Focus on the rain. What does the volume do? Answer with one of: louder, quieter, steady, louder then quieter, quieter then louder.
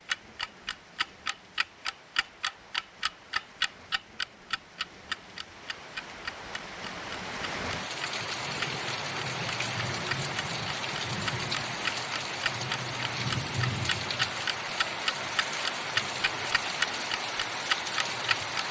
louder.